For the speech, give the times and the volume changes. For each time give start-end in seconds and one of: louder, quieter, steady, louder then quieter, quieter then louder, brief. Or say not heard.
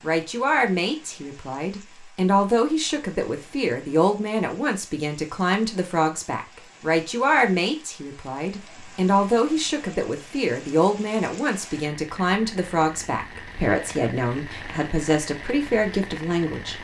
0.0-16.7 steady.